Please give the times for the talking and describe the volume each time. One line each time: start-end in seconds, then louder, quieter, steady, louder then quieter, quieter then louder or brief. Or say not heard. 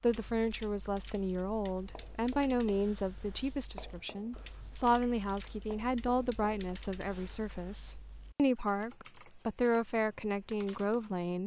0.0-11.4 steady.